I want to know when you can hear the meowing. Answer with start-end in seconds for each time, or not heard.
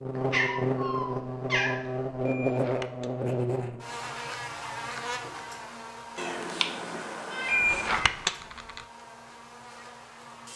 0.1-2.2, 6.2-8.1.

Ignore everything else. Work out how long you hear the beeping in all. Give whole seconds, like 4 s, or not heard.
2 s.